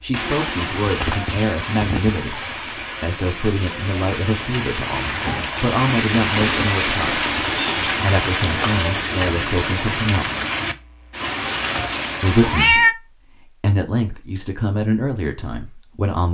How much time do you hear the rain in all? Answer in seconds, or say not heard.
13 s.